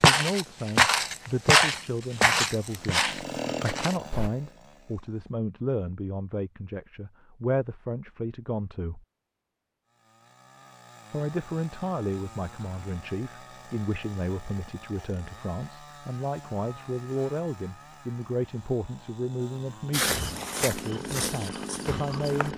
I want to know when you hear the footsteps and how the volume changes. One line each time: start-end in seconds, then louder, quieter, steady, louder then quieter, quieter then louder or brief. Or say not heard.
0.0-4.3 quieter
19.9-22.5 brief.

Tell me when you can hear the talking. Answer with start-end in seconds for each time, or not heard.
0.0-9.1, 11.1-22.5.